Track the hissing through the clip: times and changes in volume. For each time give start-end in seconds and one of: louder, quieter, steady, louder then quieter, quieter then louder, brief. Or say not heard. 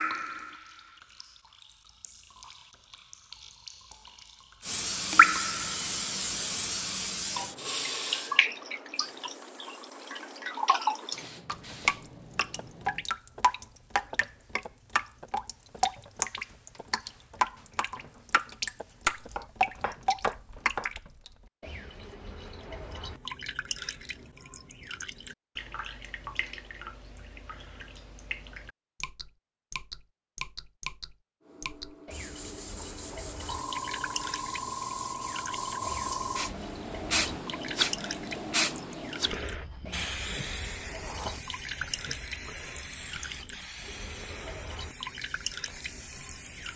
4.6-13.1 quieter then louder
31.4-46.7 louder then quieter.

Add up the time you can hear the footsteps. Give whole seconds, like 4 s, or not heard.
not heard.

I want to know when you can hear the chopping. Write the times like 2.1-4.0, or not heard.
19.2-20.9.